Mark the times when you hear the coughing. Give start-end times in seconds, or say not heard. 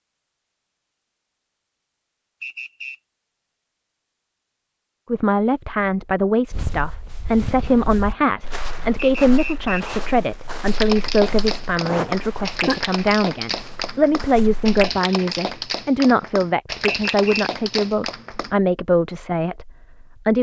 11.8-12.8.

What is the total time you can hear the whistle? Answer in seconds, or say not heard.
2 s.